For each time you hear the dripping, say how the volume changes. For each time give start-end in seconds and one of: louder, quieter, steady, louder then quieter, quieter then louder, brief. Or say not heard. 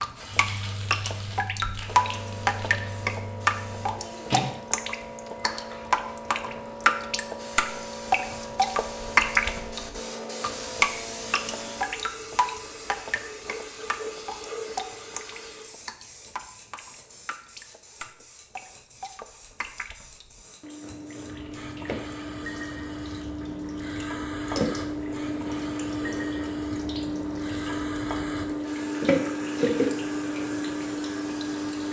0.0-31.8 quieter then louder.